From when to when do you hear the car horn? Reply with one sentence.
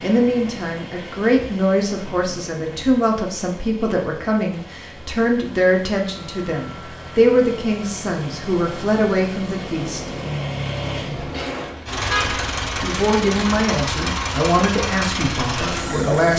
You can hear the car horn from 11.2 to 12.6 s.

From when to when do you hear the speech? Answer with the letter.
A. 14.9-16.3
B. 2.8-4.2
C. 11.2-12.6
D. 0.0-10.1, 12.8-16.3
D.